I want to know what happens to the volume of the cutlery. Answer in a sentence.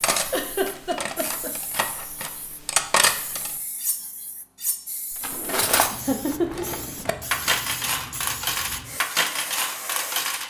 The loudness of the cutlery goes up.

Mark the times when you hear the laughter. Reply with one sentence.
The laughter can be heard from 0.3 to 1.5 s and from 5.8 to 6.7 s.